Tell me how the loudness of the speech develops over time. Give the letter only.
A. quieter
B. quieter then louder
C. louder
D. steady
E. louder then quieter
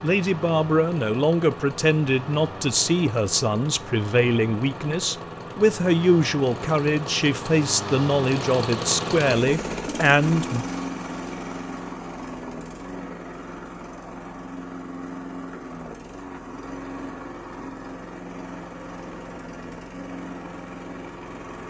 D.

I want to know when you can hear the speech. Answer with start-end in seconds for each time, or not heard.
0.0-10.7.